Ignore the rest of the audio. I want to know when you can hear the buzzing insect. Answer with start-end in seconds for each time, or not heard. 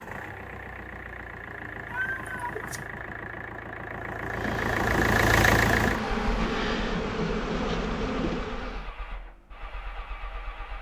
4.3-8.9.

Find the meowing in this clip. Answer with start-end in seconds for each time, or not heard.
1.9-2.9.